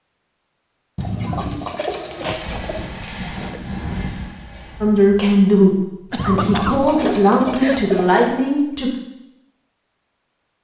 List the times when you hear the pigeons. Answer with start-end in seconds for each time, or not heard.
0.9-2.8, 6.2-8.4.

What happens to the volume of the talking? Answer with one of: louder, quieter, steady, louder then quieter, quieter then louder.
quieter then louder.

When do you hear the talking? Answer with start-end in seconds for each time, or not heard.
4.8-8.9.